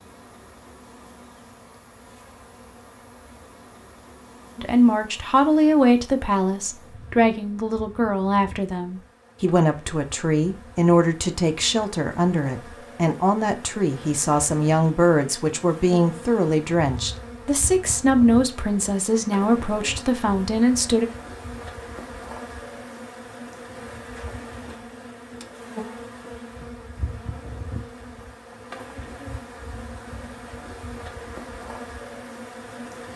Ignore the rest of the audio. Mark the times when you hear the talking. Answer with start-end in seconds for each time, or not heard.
4.5-21.1.